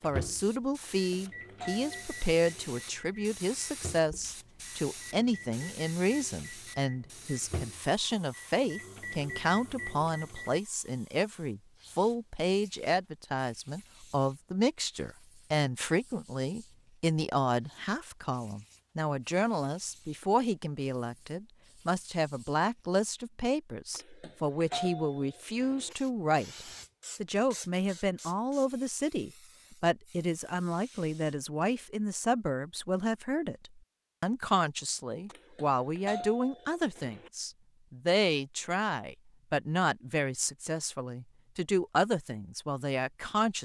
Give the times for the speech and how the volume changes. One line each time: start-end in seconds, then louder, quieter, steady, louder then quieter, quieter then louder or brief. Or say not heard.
0.0-43.6 steady.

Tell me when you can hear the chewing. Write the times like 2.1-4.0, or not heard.
not heard.